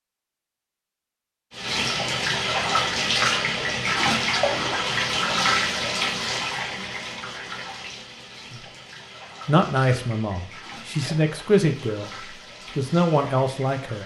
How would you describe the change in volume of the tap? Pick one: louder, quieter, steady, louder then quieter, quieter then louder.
quieter.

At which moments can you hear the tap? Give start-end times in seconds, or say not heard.
1.5-14.0.